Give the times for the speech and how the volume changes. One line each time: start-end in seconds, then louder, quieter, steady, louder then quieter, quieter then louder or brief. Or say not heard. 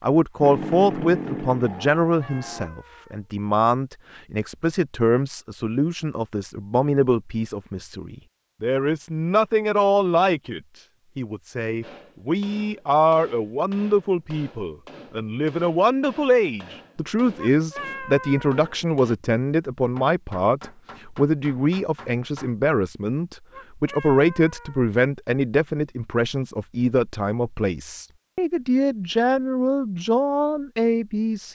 0.0-31.4 steady.